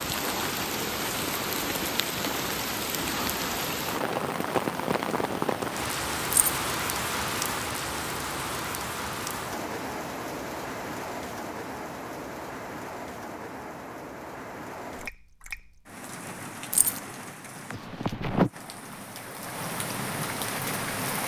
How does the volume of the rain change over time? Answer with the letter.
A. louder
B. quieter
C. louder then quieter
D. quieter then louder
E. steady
D.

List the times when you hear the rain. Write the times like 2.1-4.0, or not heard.
0.0-21.2.